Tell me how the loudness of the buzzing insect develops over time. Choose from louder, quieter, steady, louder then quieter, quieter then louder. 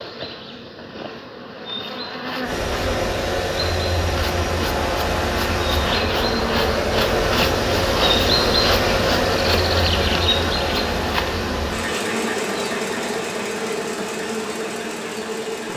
louder then quieter.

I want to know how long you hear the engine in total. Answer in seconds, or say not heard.
13 s.